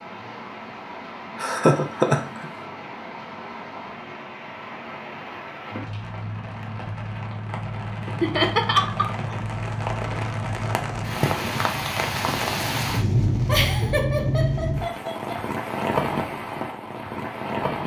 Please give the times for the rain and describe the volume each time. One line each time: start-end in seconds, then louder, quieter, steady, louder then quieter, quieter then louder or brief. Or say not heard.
0.0-17.8 louder.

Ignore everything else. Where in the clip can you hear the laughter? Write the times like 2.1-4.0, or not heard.
1.4-2.5, 8.2-9.3, 13.4-15.4.